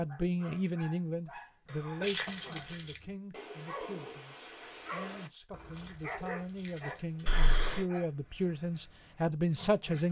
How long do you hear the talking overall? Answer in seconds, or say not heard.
10 s.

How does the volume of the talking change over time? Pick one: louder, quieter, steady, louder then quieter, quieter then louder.
quieter then louder.